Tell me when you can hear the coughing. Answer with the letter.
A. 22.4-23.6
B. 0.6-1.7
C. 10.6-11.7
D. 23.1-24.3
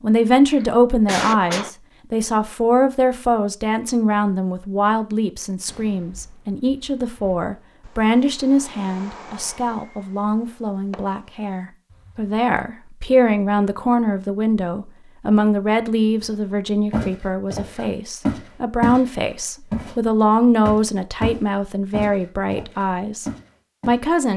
B.